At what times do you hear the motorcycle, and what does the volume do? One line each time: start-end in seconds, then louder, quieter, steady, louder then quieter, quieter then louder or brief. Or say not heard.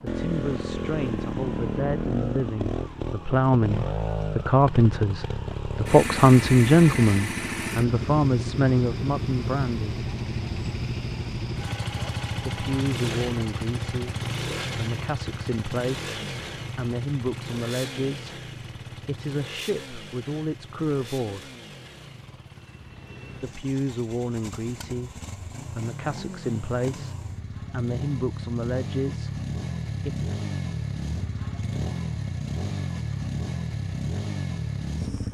0.0-35.2 quieter then louder.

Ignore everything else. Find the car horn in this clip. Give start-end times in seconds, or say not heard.
not heard.